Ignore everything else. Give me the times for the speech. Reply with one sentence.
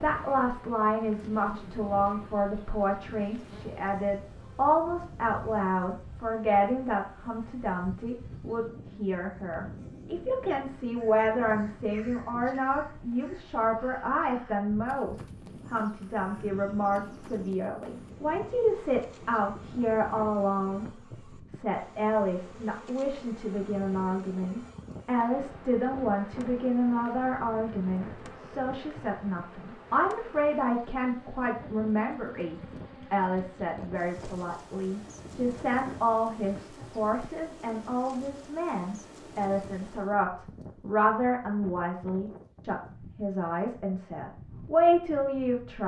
You can hear the speech from 0.0 to 20.9 s and from 21.5 to 45.8 s.